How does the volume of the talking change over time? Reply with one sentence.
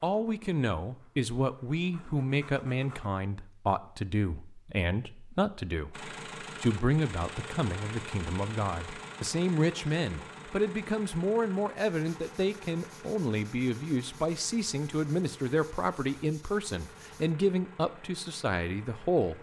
The volume of the talking stays about the same.